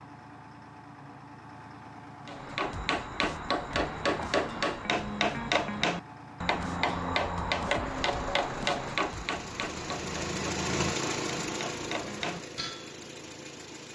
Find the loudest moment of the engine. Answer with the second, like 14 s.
11 s.